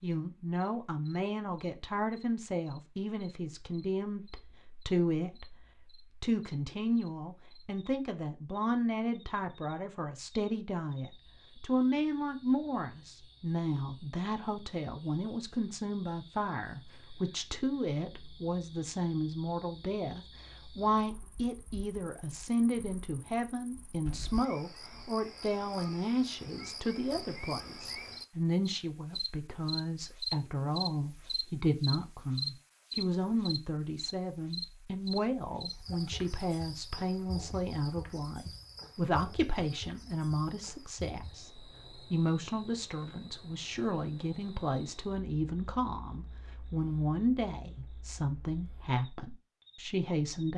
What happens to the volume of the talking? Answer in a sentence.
The loudness of the talking stays about the same.